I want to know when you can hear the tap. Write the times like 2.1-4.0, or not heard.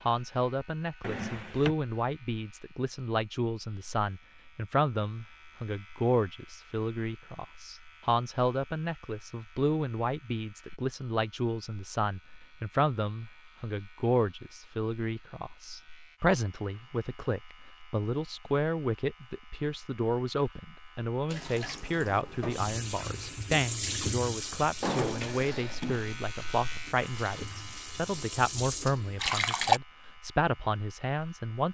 21.3-29.8.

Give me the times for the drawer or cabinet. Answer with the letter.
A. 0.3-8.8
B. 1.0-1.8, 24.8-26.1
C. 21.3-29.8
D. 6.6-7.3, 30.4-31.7
B.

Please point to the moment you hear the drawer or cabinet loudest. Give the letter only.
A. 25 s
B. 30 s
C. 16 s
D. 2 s
A.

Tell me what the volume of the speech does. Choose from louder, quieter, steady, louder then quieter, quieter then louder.
steady.